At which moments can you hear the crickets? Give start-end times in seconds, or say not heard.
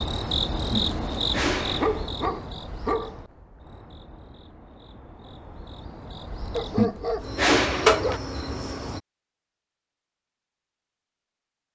0.0-9.0.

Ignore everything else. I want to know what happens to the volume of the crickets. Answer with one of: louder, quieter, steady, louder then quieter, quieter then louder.
quieter then louder.